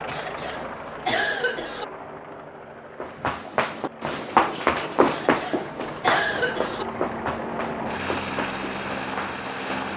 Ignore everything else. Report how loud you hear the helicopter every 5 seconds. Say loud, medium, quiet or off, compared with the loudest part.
medium, loud.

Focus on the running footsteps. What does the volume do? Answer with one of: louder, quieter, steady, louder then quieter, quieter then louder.
quieter.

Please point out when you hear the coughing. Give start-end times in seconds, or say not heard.
0.1-1.9, 5.0-6.8.